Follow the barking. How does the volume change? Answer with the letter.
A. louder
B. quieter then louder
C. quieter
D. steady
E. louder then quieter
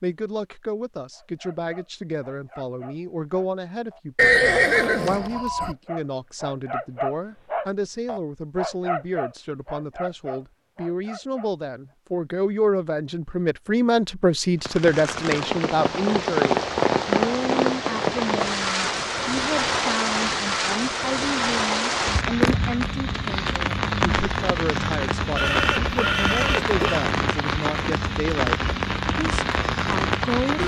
E.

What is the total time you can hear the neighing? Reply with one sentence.
The neighing can be heard for 3 seconds in total.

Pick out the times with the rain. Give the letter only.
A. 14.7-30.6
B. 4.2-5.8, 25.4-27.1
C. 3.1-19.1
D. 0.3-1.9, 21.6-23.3
A.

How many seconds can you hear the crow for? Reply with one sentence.
The crow can't be heard in this clip.